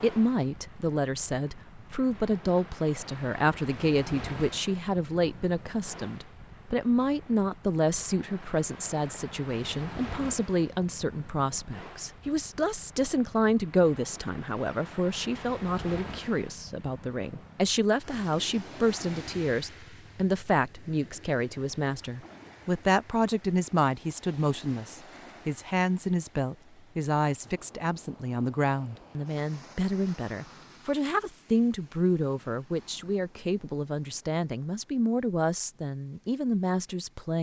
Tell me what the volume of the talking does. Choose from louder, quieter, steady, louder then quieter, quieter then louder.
steady.